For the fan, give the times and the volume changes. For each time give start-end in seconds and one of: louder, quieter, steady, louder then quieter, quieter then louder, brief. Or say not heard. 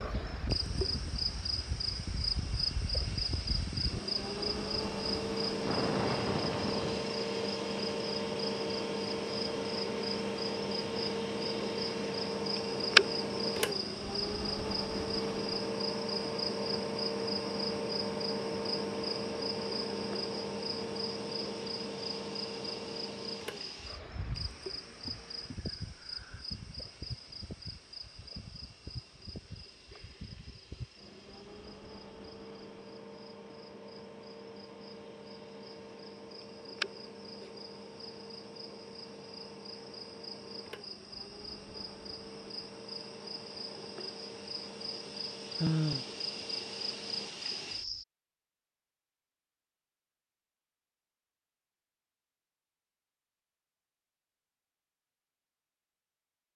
0.0-47.3 quieter.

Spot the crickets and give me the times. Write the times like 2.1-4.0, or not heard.
0.0-48.0.